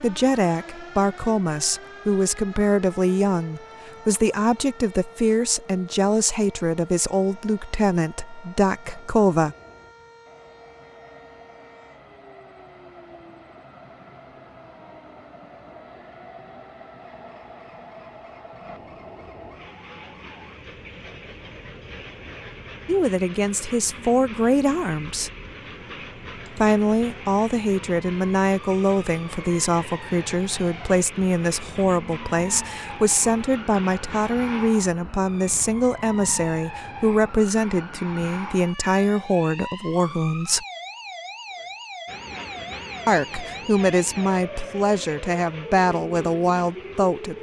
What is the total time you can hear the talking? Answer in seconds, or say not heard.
30 s.